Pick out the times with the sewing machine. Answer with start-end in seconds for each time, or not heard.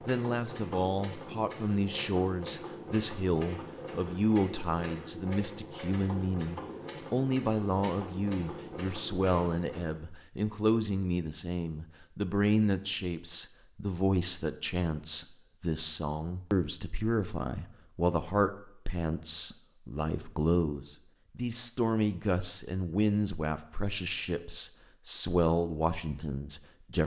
0.0-10.1.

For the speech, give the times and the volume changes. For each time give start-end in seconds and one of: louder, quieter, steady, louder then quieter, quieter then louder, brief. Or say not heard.
0.1-27.0 steady.